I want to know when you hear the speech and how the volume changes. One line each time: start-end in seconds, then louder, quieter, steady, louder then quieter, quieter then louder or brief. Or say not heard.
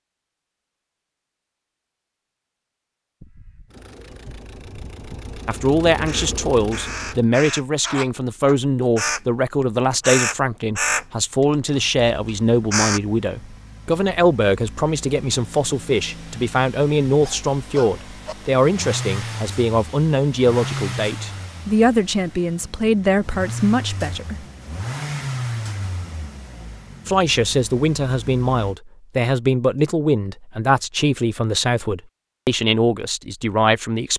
5.5-24.4 steady
27.1-34.1 steady.